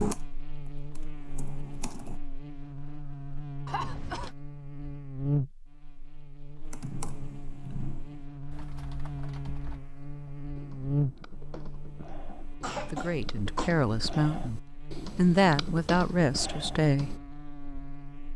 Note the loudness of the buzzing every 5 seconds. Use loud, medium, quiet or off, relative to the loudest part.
medium, loud, loud, medium.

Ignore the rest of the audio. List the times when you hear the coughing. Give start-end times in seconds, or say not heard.
3.6-4.3, 12.6-13.7.